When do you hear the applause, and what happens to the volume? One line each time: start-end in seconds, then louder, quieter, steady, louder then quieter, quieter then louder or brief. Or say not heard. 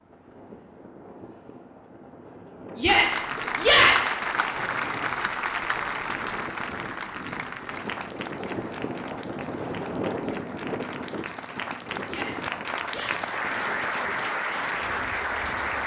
2.9-15.8 quieter then louder.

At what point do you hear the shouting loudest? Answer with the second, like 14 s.
4 s.